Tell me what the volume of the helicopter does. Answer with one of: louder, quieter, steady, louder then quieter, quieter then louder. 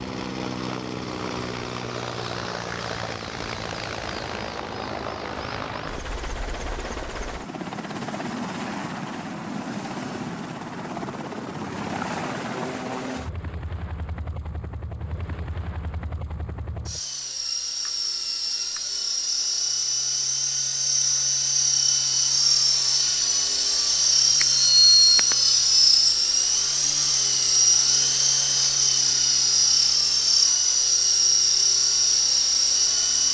louder.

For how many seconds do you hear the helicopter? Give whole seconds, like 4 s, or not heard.
33 s.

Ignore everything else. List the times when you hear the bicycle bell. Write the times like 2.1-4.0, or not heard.
24.4-25.6.